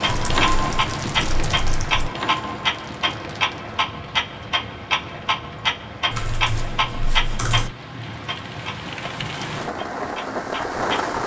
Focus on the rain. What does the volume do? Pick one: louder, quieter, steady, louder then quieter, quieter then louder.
quieter then louder.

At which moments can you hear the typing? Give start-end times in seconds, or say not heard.
0.1-2.1, 6.1-7.7.